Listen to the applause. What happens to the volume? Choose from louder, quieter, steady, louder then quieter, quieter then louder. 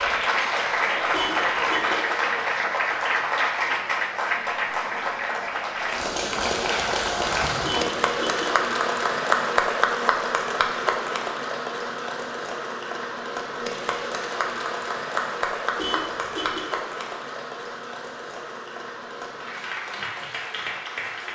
quieter.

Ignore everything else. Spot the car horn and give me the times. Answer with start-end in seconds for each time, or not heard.
1.1-1.9, 7.6-8.4, 15.8-16.6.